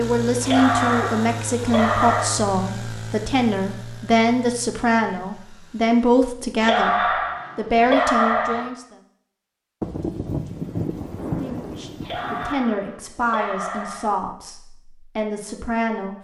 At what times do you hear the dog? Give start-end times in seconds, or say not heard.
0.4-2.4, 6.6-8.7, 12.0-14.1.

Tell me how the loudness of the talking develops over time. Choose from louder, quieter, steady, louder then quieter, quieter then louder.
quieter.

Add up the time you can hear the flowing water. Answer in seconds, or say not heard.
not heard.